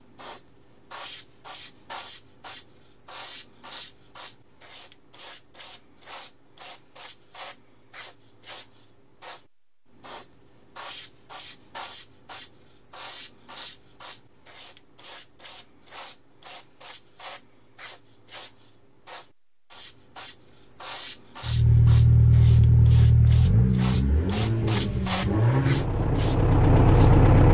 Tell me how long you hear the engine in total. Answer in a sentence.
You can hear the engine for 6 seconds altogether.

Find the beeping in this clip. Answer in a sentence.
You can't hear the beeping here.